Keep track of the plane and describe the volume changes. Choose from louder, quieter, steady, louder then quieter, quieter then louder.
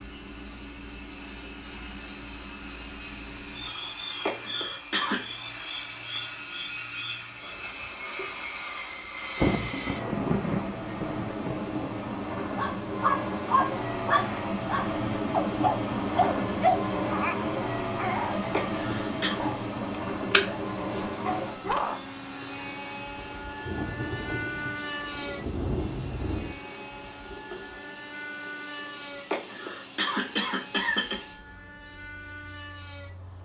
louder then quieter.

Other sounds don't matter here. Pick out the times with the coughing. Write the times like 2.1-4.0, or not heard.
4.2-5.3, 18.5-19.4, 29.3-31.2.